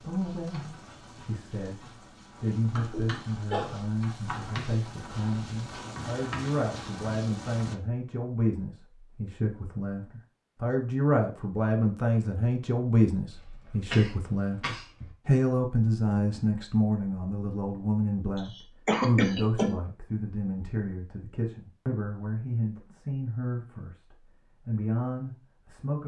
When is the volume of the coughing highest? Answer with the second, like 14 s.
19 s.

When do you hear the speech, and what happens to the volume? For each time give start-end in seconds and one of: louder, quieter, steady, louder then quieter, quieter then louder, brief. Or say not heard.
0.0-26.0 louder then quieter.